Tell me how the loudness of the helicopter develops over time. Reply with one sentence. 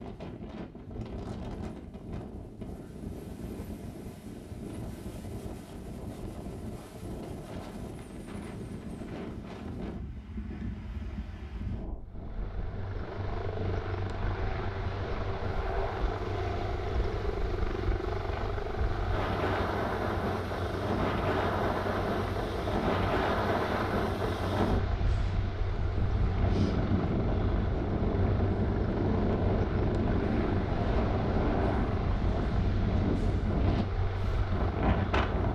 The volume of the helicopter stays about the same.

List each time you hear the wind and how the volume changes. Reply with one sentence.
You can hear the wind from 0.0 to 35.5 s, getting louder.